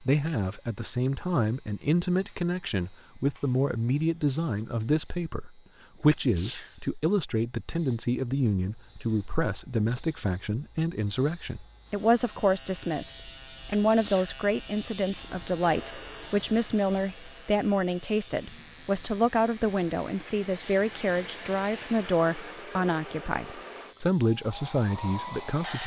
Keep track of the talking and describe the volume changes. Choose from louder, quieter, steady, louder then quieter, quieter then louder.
steady.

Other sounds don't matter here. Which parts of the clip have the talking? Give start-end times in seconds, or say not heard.
0.0-25.8.